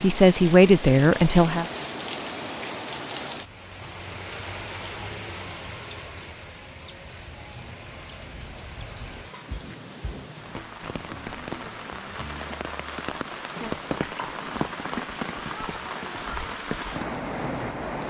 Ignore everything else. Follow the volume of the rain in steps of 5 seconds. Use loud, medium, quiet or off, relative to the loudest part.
loud, medium, loud, loud.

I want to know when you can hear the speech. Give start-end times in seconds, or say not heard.
0.0-1.6.